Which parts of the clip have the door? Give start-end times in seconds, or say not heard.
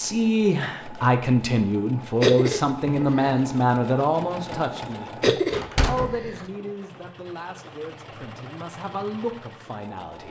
5.5-6.5.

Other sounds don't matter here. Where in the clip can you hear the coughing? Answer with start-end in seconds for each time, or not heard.
2.2-3.4, 5.2-6.5.